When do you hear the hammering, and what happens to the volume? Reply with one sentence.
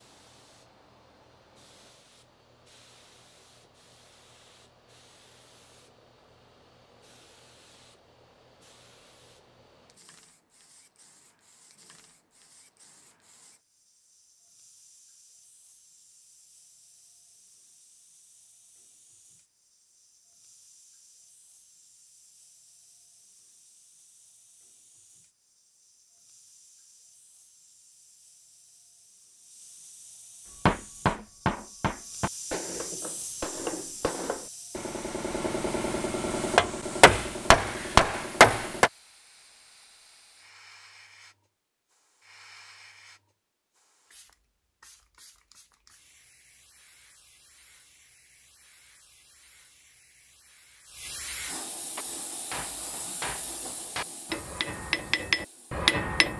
You can hear the hammering from 30.6 to 38.9 s, getting quieter then louder; and from 52.0 to 56.3 s, getting louder.